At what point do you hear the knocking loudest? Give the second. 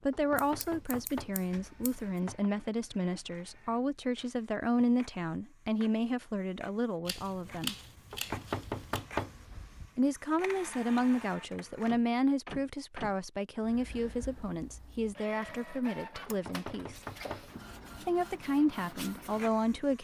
9 s.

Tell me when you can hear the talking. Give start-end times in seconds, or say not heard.
0.1-7.8, 9.9-16.9, 18.0-19.9.